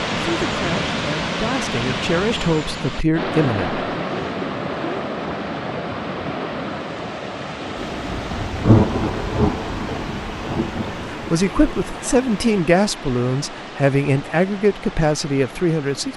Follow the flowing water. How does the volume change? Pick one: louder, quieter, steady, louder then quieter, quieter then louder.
quieter.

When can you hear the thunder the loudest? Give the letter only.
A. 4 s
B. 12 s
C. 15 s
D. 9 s
D.